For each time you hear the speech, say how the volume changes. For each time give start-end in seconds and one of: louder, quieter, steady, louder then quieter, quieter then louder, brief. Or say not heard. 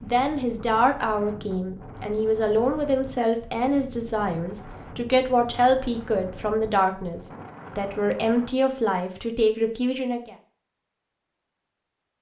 0.0-10.3 steady.